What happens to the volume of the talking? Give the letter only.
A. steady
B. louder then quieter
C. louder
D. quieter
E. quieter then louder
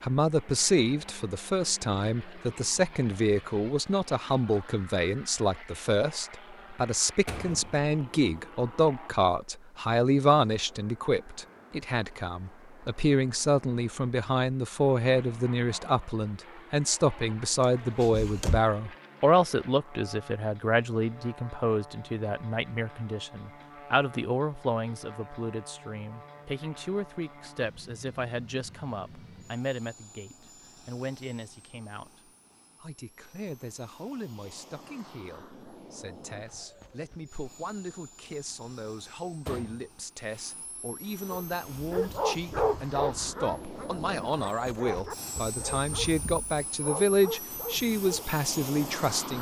E.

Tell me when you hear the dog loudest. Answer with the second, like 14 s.
43 s.